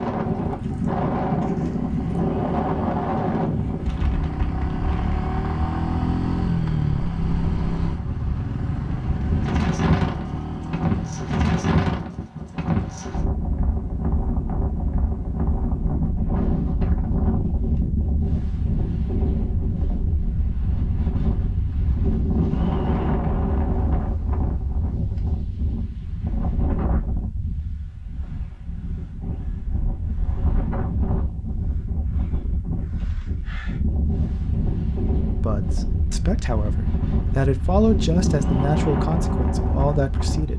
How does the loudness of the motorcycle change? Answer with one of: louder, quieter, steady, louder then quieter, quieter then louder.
louder then quieter.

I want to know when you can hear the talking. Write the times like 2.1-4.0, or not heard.
35.4-40.5.